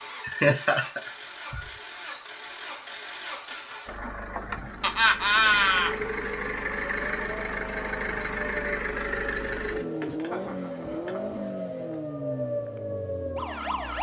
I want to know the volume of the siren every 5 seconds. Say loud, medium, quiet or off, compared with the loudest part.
off, medium, loud.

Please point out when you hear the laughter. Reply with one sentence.
The laughter can be heard from 0.2 to 2.2 s, from 4.8 to 6.0 s and from 10.0 to 11.4 s.